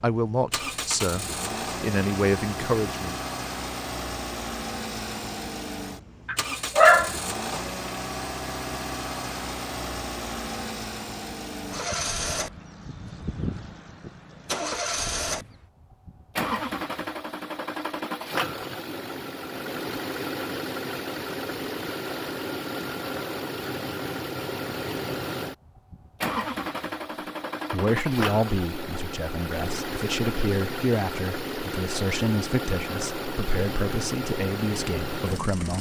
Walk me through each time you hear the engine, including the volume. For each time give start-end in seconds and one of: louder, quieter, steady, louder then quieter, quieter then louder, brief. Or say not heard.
0.0-35.7 steady.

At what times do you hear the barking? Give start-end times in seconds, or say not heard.
6.2-7.6.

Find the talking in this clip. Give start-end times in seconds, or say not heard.
0.0-3.1, 27.7-35.7.